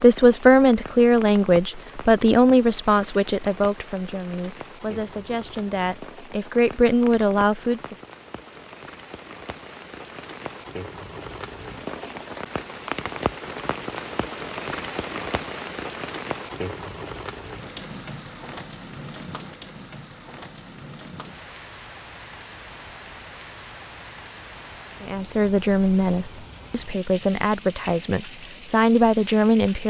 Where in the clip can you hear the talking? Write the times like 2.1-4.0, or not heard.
0.0-8.0, 25.0-29.8.